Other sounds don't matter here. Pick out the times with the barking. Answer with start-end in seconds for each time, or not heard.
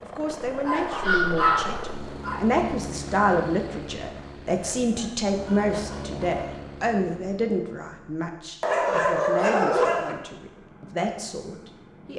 0.5-2.4, 4.5-6.5, 8.6-10.2.